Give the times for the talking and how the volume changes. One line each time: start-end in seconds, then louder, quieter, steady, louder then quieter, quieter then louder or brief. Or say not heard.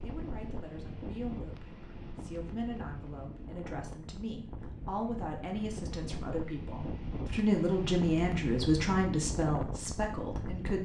0.0-10.8 louder.